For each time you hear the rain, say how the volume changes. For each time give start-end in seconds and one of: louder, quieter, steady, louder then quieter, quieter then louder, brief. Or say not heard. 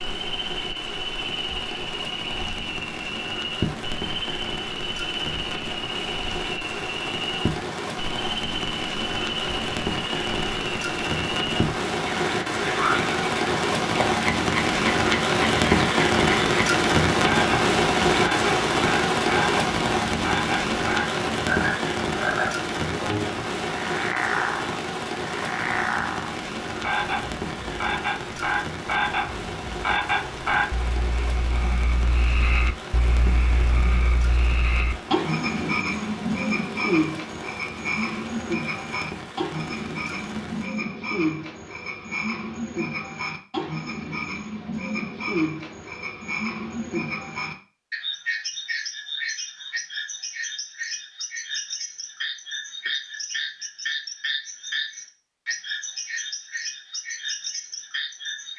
0.0-40.8 louder then quieter.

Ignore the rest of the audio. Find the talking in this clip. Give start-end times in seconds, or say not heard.
not heard.